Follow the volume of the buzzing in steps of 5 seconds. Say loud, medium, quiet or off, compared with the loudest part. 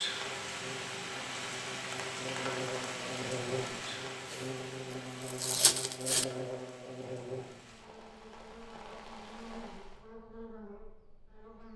loud, loud, medium.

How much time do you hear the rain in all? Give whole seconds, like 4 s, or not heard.
10 s.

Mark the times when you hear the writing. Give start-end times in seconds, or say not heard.
not heard.